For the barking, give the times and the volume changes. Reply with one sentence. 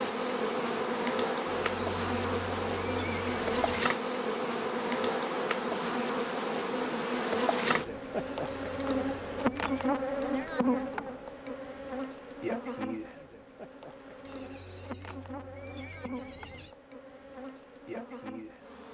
You can't hear the barking here.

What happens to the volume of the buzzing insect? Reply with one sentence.
The volume of the buzzing insect goes down.